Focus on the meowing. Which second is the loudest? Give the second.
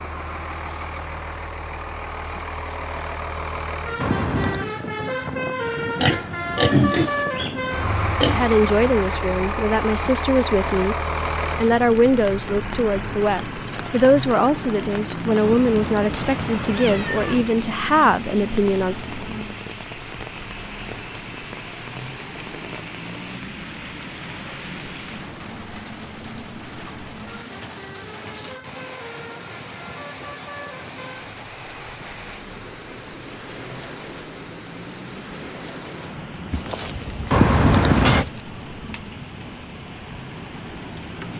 38 s.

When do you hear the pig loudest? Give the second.
7 s.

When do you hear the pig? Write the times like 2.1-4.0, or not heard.
6.0-8.4, 36.5-38.5.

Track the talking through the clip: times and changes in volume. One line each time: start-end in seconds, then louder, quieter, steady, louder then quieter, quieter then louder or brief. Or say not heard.
8.3-18.9 steady.